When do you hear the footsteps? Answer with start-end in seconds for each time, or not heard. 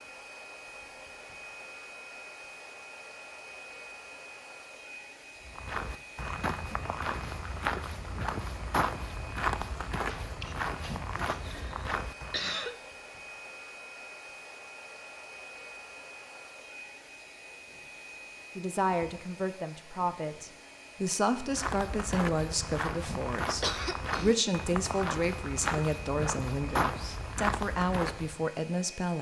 5.5-12.6, 21.4-28.4.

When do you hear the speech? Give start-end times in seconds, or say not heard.
18.6-29.1.